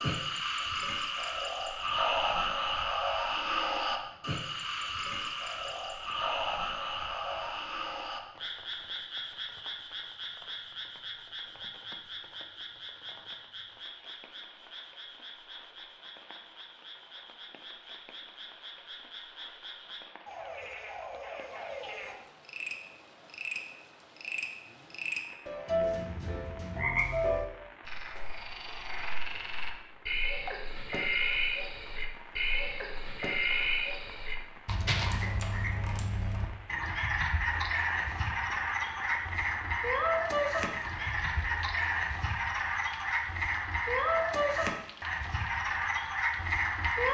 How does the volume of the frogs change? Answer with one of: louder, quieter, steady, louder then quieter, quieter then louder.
quieter then louder.